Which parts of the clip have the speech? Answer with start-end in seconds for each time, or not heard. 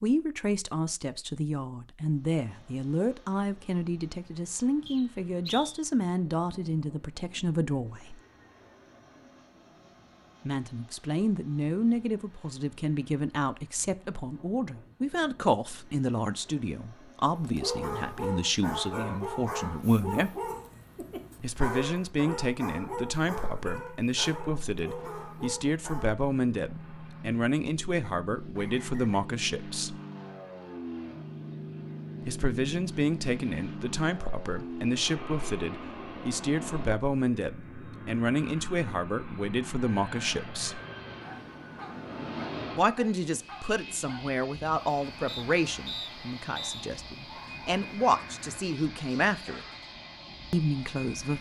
0.0-8.2, 10.4-20.3, 21.4-29.9, 32.2-40.8, 42.8-49.6, 50.5-51.3.